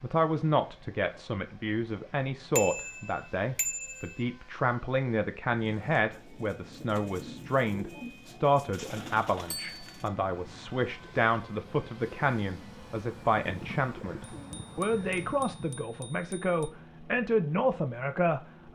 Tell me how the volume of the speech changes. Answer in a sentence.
The loudness of the speech stays about the same.